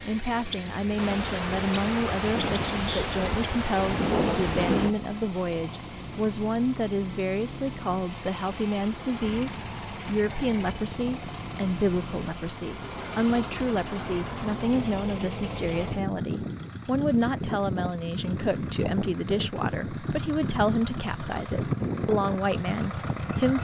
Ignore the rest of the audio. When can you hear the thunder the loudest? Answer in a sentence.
The volume of the thunder peaks at 4 seconds.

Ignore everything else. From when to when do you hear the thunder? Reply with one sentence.
The thunder can be heard from 0.9 to 5.0 s.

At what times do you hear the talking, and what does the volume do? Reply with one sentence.
You can hear the talking from 0.0 to 23.5 s, at a steady volume.